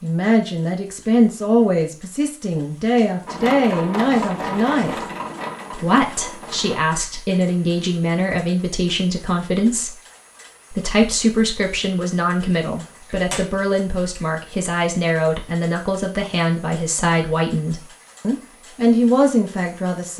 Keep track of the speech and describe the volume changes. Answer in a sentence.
The loudness of the speech stays about the same.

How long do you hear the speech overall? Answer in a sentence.
You can hear the speech for 19 seconds altogether.